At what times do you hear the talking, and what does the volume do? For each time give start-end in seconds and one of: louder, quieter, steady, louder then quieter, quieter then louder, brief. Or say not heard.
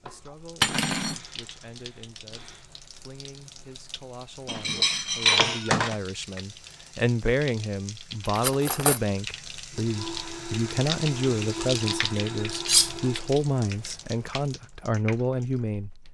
0.0-15.9 louder.